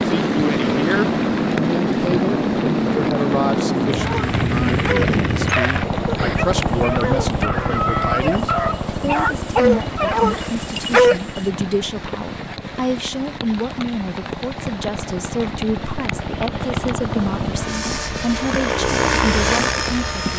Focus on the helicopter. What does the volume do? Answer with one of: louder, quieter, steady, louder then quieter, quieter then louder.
quieter then louder.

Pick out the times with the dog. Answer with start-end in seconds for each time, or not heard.
4.0-11.4.